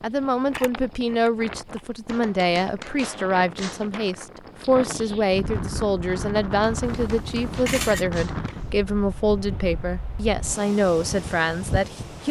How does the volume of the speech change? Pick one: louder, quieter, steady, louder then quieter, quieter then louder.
steady.